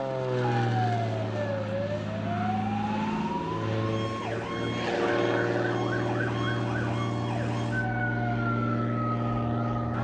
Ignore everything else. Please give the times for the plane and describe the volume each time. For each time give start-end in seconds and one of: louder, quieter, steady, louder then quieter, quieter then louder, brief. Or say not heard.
0.0-9.9 steady.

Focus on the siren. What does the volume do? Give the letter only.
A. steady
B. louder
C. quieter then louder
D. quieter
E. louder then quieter
A.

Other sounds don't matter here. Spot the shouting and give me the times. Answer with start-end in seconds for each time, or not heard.
not heard.